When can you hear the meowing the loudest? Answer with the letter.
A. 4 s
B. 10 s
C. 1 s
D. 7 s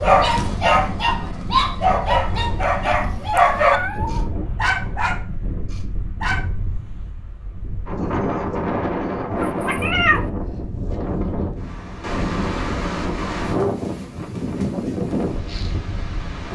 B.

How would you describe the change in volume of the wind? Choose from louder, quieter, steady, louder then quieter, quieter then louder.
louder.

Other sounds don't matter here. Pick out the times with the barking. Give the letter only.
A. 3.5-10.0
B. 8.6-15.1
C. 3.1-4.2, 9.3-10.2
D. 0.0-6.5
D.